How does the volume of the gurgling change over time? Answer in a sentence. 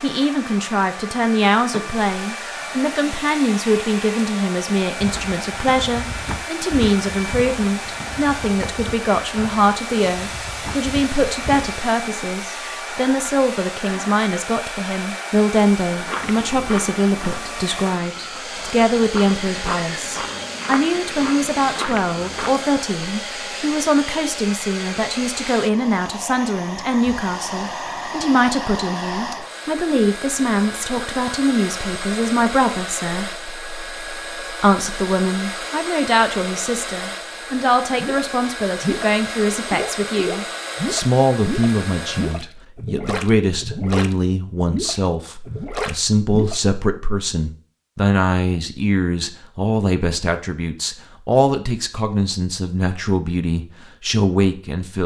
The volume of the gurgling stays about the same.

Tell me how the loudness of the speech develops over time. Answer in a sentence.
The volume of the speech stays about the same.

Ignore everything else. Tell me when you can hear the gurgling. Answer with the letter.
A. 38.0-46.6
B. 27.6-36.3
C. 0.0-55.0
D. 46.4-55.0
A.